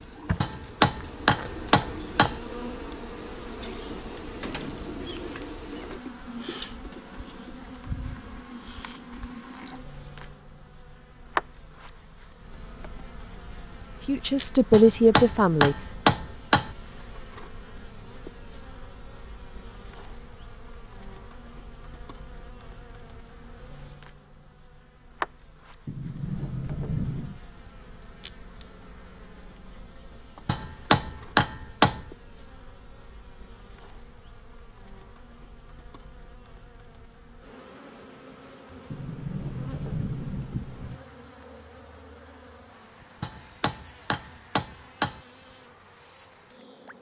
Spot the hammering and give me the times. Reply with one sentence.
You can hear the hammering from 0.4 to 2.4 s, from 14.7 to 16.8 s, from 30.4 to 32.1 s and from 43.2 to 45.2 s.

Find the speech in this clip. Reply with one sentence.
You can hear the speech from 14.1 to 15.8 s.